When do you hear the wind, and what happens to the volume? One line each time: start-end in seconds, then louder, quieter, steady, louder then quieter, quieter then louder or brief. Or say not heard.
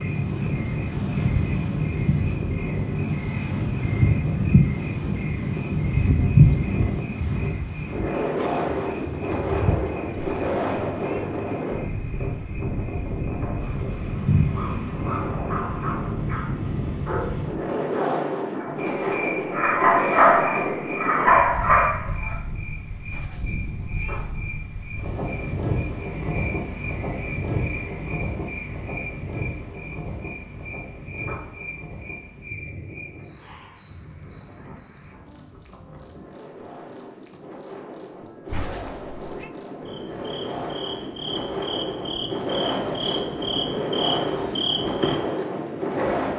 0.0-46.3 quieter then louder.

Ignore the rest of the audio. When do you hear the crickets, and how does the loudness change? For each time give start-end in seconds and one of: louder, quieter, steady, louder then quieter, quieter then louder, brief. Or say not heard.
0.0-46.3 quieter then louder.